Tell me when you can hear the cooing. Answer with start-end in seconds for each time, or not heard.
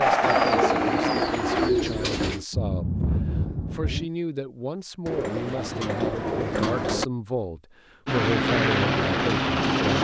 0.2-2.5, 5.0-7.0.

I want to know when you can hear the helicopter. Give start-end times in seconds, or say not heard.
0.0-1.7, 8.1-9.9.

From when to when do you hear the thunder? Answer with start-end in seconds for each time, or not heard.
2.5-4.0.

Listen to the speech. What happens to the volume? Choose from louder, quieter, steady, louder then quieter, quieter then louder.
louder.